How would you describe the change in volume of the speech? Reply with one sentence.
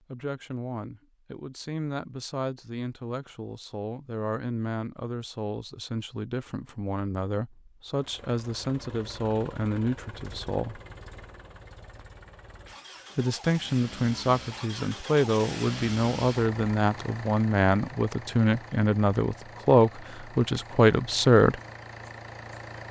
The loudness of the speech goes up.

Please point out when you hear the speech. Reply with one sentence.
The speech can be heard from 0.1 to 10.8 s and from 13.2 to 21.6 s.